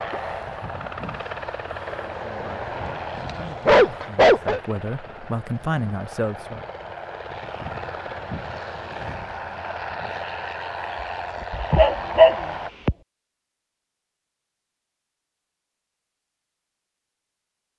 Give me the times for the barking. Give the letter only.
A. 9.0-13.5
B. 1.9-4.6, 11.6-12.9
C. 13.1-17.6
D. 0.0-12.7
B.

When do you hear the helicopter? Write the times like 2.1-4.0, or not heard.
0.0-12.7.